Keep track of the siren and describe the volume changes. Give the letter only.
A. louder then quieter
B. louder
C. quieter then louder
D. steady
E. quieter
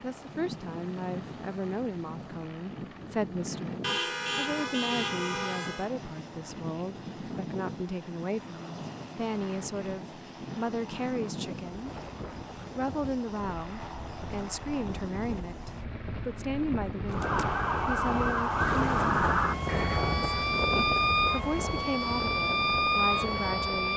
D.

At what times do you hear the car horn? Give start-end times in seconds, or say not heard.
3.8-5.9, 19.6-20.4.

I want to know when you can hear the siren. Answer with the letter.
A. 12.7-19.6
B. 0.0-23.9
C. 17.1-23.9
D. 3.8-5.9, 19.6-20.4
C.